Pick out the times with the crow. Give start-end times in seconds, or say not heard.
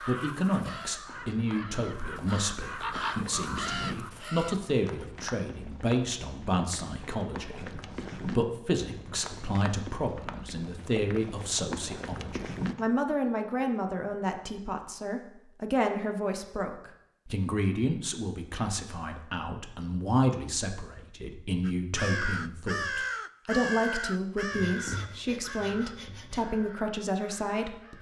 0.0-4.7, 21.6-27.9.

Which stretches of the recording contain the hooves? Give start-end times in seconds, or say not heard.
0.9-12.8.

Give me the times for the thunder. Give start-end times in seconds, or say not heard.
not heard.